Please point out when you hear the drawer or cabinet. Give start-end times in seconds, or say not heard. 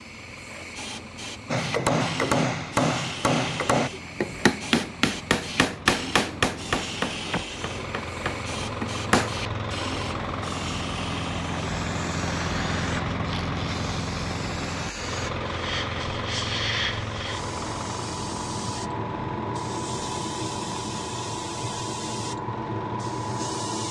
not heard.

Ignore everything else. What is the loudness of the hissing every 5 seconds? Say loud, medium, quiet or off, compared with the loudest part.
medium, medium, medium, loud, loud.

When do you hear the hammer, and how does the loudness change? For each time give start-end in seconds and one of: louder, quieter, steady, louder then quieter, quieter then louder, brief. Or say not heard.
1.4-9.3 quieter.